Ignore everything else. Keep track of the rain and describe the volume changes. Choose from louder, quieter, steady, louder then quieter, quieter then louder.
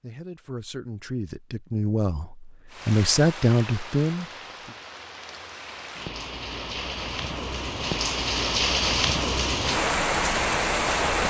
louder.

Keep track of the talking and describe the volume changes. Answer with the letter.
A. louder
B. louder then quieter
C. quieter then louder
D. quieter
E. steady
A.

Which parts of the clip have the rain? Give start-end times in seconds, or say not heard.
2.7-11.2.